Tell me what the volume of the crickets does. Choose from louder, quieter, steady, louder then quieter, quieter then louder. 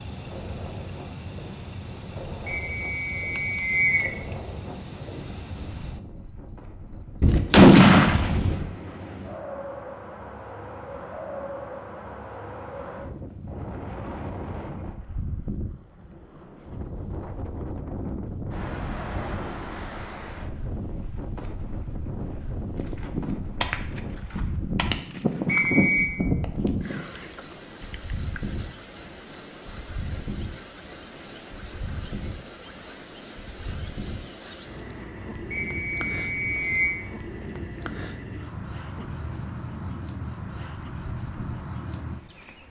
steady.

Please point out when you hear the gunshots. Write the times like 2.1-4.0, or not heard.
7.2-8.7, 22.8-27.1.